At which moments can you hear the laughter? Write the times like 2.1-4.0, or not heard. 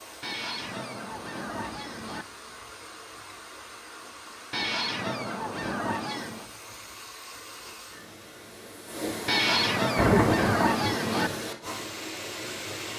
9.9-10.9.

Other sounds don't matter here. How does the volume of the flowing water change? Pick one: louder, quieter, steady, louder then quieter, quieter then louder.
louder.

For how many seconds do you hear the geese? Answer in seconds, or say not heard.
6 s.